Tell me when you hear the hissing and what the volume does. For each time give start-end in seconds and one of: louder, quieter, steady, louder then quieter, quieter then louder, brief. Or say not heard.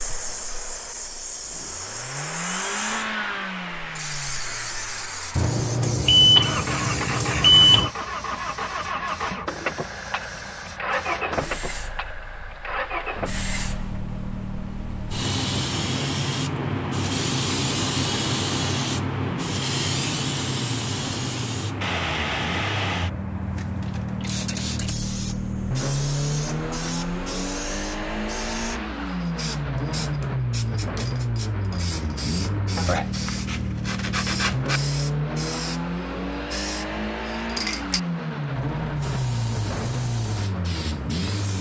0.0-41.5 louder then quieter.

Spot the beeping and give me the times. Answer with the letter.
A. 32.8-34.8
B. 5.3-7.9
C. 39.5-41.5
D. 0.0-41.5
B.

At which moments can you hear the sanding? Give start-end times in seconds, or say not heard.
32.8-34.8.